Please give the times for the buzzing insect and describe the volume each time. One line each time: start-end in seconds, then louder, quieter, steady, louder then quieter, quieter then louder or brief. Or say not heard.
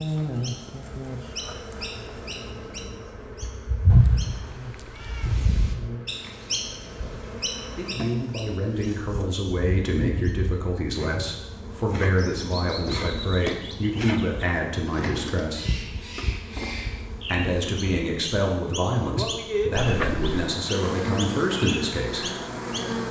0.0-23.0 louder.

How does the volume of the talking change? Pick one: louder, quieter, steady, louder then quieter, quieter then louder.
steady.